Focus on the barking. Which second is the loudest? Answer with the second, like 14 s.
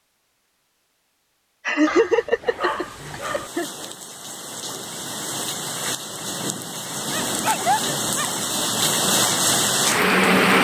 8 s.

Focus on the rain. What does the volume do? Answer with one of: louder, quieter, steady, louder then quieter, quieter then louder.
louder.